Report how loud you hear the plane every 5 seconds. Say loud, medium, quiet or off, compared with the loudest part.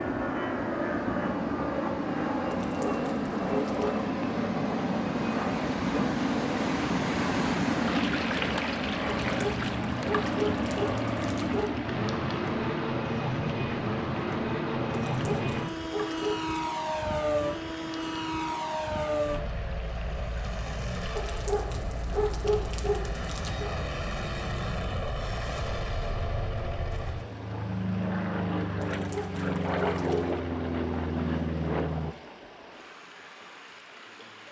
loud, loud, loud, loud, medium, loud, loud.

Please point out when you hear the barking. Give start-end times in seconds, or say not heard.
2.5-4.0, 9.2-11.7, 15.1-16.4, 21.1-23.8, 28.8-30.4.